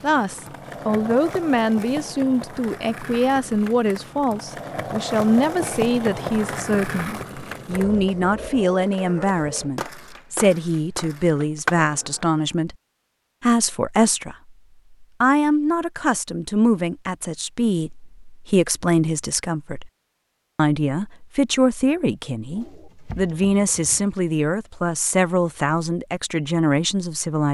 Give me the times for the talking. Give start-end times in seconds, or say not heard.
0.0-12.8, 13.4-19.9, 20.6-27.4.